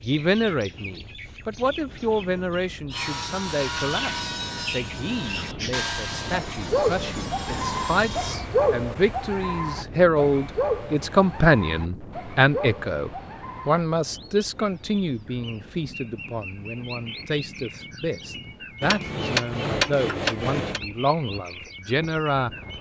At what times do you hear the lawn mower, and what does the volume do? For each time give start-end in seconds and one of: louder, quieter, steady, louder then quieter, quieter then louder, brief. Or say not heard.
not heard.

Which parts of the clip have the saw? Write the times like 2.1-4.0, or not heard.
2.9-8.4.